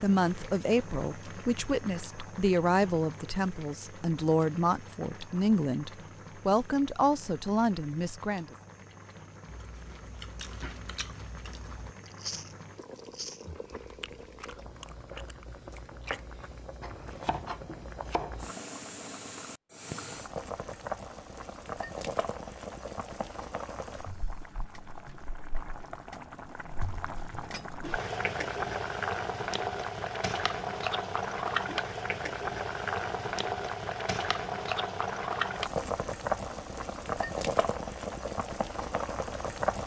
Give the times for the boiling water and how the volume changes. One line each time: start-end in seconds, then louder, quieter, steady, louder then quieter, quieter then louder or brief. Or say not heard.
0.0-39.8 louder.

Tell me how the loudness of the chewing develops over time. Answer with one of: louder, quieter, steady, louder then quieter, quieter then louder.
quieter.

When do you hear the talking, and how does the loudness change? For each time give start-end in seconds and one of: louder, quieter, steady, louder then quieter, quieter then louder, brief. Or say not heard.
0.0-8.6 steady.